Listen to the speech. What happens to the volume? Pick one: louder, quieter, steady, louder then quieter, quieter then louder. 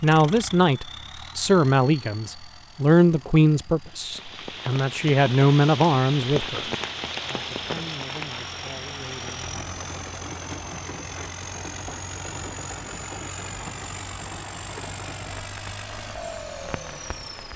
quieter.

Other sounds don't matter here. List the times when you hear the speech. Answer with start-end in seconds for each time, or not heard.
0.0-9.7.